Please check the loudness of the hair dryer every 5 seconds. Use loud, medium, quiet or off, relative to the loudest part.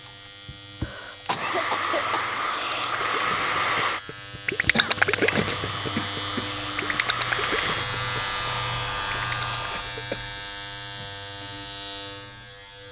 loud, medium, off.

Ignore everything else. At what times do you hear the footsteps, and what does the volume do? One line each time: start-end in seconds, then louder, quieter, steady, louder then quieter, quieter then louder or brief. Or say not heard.
not heard.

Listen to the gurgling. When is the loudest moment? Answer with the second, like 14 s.
5 s.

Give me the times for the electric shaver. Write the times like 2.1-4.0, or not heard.
0.0-12.8.